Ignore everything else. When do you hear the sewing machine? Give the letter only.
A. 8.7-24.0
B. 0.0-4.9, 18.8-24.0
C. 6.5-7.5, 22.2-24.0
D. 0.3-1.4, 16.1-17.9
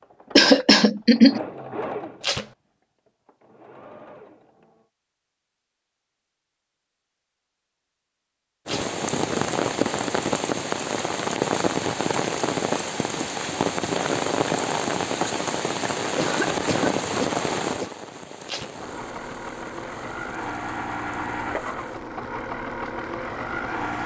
B.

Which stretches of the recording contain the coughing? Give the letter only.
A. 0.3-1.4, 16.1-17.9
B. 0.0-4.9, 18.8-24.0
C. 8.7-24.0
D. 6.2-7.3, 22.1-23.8
A.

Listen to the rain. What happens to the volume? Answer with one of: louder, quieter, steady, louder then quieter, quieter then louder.
quieter.